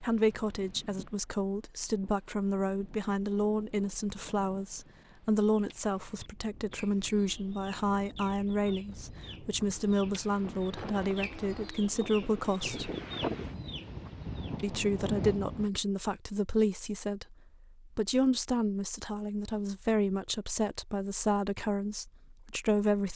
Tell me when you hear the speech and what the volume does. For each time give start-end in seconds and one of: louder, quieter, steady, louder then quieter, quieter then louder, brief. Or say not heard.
0.0-12.9 steady
14.6-23.1 steady.